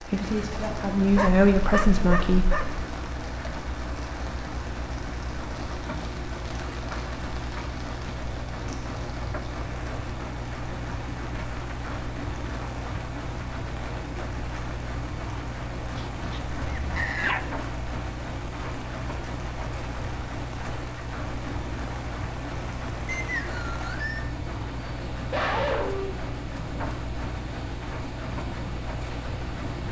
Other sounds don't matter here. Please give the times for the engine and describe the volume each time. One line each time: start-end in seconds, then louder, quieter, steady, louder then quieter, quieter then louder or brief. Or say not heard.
0.0-29.8 steady.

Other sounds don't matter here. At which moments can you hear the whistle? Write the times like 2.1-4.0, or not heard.
23.1-24.2.